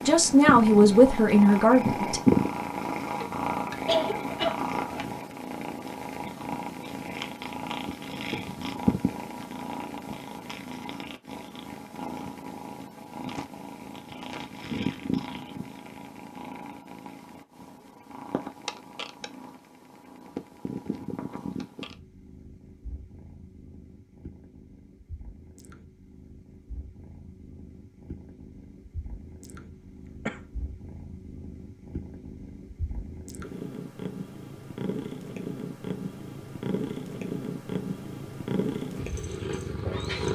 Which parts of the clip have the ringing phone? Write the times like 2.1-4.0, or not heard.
not heard.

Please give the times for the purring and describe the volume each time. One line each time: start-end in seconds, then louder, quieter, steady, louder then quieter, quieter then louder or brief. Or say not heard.
0.0-40.3 quieter then louder.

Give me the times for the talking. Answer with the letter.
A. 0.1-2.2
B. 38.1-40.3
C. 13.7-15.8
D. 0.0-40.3
A.